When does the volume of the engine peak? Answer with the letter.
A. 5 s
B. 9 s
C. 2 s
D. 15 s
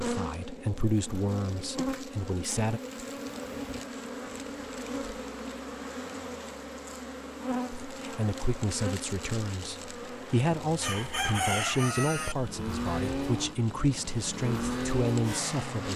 D.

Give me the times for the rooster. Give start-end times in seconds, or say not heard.
10.8-12.3.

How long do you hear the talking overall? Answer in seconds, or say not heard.
11 s.